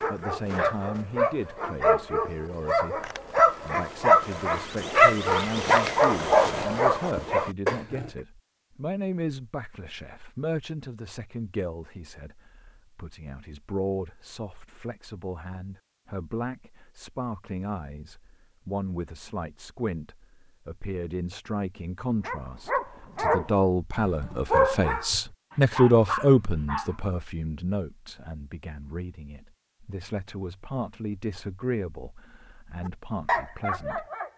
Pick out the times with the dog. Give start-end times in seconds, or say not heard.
0.0-8.1, 22.2-27.0, 33.2-34.3.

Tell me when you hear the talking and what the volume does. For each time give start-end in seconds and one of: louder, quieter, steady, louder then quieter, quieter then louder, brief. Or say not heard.
0.1-34.0 louder then quieter.